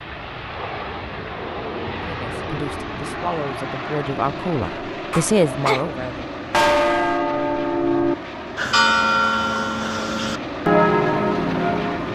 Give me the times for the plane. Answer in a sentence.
The plane can be heard from 0.0 to 12.1 s.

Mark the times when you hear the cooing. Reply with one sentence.
The cooing can't be heard in this clip.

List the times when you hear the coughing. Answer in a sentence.
The coughing can be heard from 5.1 to 5.8 s.